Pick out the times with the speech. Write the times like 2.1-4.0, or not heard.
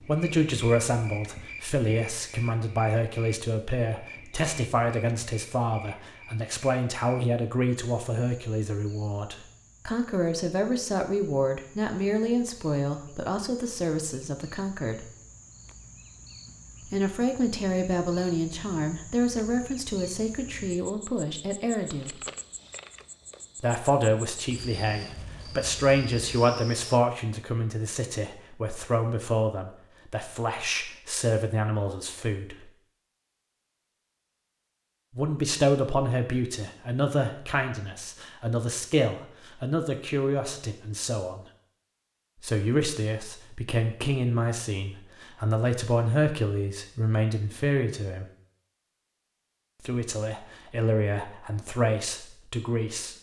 0.0-15.1, 16.9-22.2, 23.6-32.7, 35.1-41.4, 42.4-48.2, 49.9-53.1.